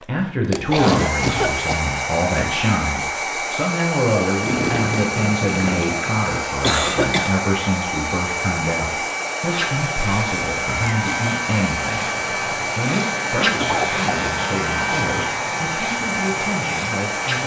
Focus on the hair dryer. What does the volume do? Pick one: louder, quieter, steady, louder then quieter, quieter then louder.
steady.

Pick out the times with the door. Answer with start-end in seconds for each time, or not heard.
not heard.